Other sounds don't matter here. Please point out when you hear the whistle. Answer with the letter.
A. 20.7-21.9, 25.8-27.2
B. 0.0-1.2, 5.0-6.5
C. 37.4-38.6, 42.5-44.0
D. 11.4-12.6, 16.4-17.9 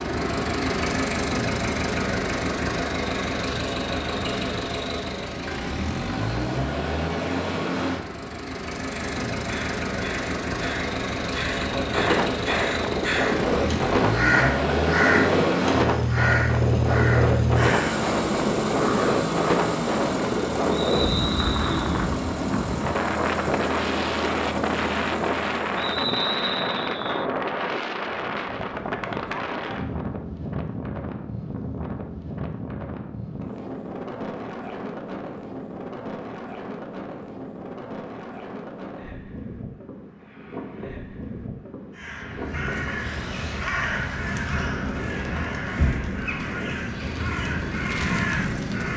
A.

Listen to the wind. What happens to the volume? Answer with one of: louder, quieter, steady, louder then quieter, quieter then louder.
quieter.